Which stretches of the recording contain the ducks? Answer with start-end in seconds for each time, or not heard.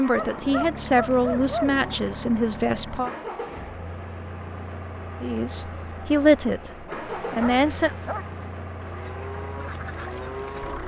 8.8-10.8.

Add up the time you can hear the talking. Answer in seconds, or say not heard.
6 s.